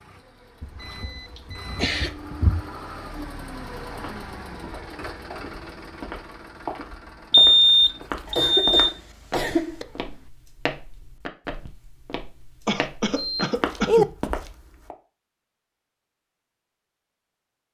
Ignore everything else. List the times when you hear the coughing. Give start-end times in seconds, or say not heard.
1.4-2.1, 8.2-9.8, 12.7-14.1.